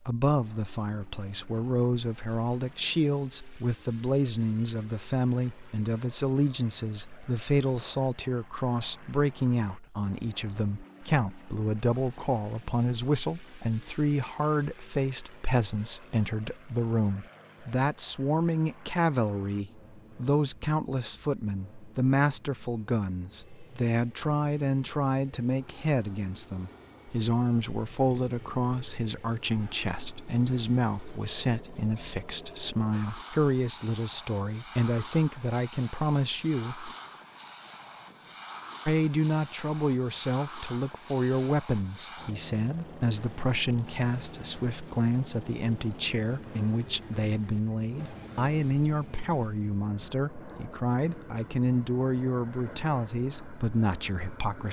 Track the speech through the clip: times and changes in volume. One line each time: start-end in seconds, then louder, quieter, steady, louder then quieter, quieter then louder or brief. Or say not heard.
0.1-36.9 steady
38.9-54.6 steady.